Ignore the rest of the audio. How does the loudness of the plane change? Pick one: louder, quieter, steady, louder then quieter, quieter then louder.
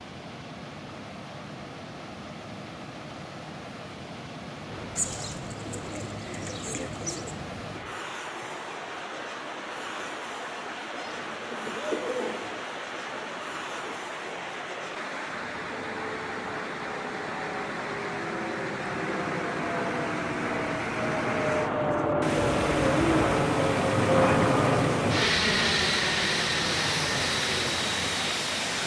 louder.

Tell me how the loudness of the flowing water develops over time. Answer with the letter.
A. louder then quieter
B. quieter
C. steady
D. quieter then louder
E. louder
E.